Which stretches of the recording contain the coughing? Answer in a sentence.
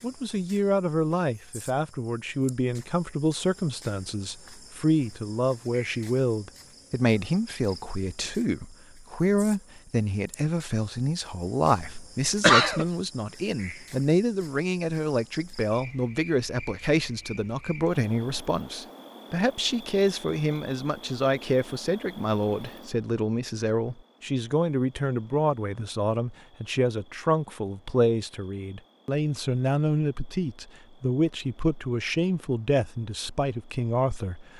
You can hear the coughing from 11.8 to 12.8 s.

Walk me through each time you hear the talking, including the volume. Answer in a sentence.
The talking can be heard from 0.0 to 34.5 s, at a steady volume.